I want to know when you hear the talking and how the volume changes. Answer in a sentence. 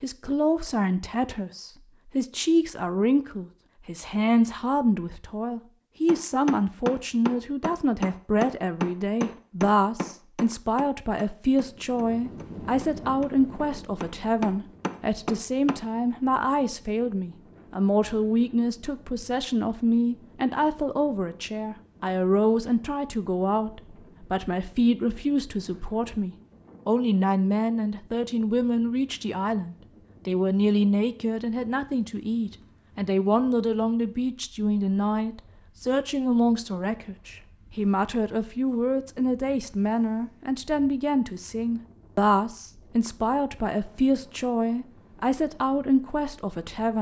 You can hear the talking from 0.0 to 46.9 s, at a steady volume.